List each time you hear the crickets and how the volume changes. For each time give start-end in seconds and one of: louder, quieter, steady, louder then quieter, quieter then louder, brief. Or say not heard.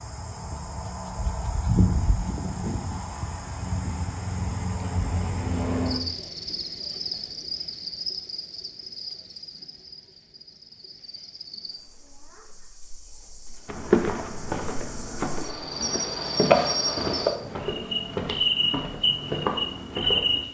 0.0-20.4 quieter then louder.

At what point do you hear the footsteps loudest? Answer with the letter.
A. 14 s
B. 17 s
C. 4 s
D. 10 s
A.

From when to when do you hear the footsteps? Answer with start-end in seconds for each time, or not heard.
13.7-20.4.